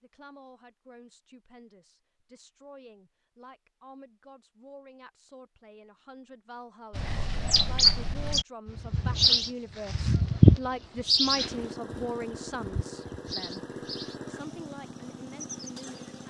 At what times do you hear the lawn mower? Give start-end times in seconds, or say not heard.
11.3-16.2.